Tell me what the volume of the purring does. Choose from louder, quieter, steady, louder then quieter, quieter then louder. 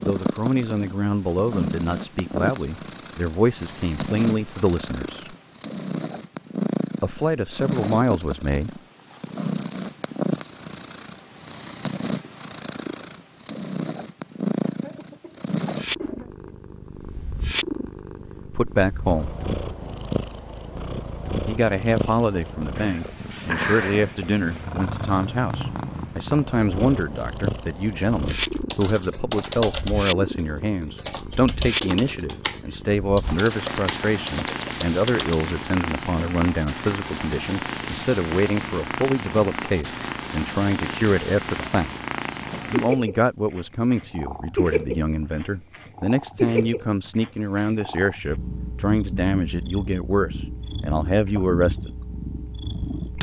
steady.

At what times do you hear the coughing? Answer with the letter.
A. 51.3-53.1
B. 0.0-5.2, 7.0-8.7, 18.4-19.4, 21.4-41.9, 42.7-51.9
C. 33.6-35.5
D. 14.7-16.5
D.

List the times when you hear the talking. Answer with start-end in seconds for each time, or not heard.
0.0-5.2, 7.0-8.7, 18.4-19.4, 21.4-41.9, 42.7-51.9.